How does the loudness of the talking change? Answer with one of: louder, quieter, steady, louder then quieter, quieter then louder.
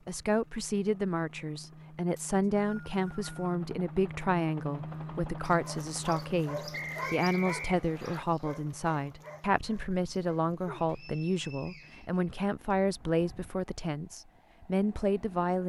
steady.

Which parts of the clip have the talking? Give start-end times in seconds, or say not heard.
0.1-15.6.